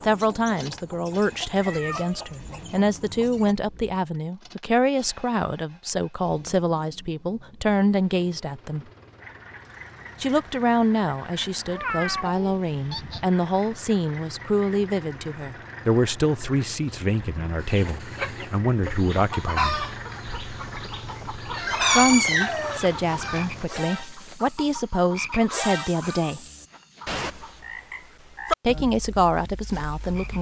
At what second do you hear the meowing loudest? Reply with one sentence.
The volume of the meowing peaks at 22 seconds.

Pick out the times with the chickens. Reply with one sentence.
You can hear the chickens from 0.0 to 3.5 s and from 17.6 to 27.6 s.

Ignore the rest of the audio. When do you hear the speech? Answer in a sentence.
You can hear the speech from 0.0 to 8.8 s, from 10.2 to 19.8 s, from 21.9 to 26.4 s and from 28.6 to 30.3 s.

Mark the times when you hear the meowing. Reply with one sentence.
The meowing can be heard from 1.5 to 2.4 s, from 11.7 to 13.2 s and from 21.6 to 22.8 s.